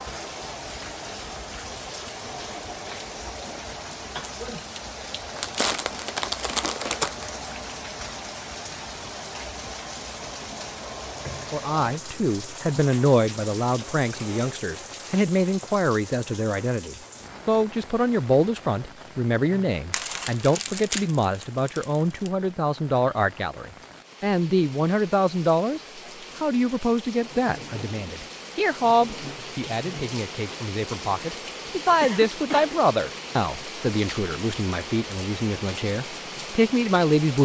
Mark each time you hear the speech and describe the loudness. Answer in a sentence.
The speech can be heard from 11.5 to 37.4 s, at a steady volume.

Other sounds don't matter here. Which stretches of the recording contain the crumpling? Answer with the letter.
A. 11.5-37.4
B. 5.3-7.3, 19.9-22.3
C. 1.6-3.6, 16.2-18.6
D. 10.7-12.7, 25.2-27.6
B.